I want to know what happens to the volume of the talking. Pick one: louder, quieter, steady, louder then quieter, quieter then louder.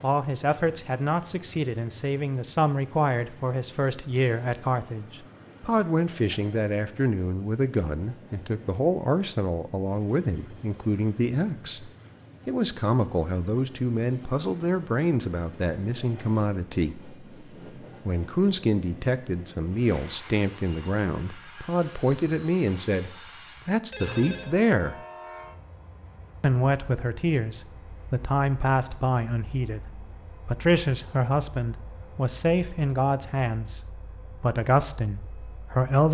steady.